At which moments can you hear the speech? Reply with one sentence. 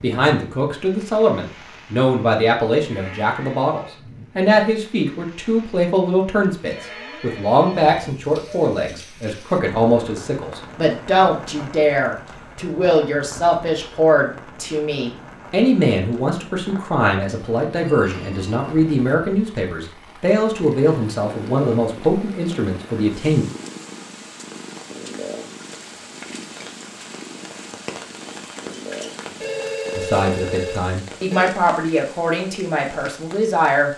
The speech can be heard from 0.0 to 23.4 s and from 29.9 to 33.9 s.